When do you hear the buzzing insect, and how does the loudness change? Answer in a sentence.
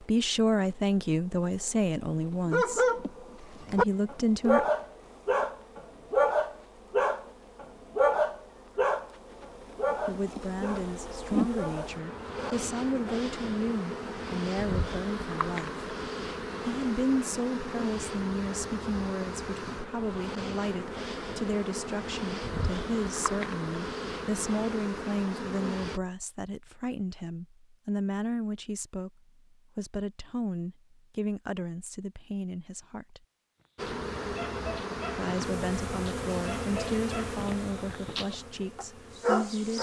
You can hear the buzzing insect from 0.0 to 26.0 s, getting louder; and from 33.8 to 39.7 s, getting quieter.